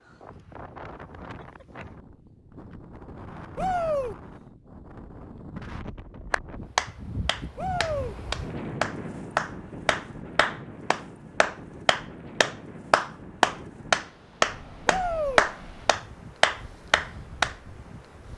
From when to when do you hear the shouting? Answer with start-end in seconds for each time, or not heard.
3.5-4.2, 7.5-8.2, 14.8-15.4.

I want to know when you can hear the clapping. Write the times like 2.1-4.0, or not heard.
6.3-17.6.